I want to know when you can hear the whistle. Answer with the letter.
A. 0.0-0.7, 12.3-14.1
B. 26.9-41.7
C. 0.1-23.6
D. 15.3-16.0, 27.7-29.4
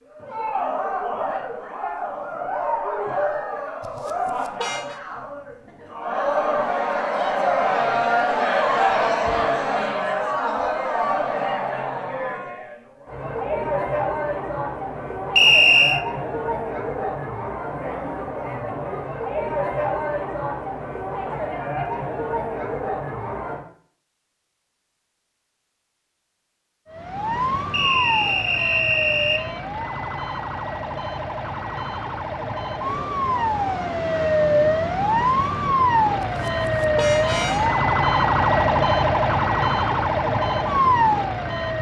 D.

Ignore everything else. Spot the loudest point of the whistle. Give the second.
16 s.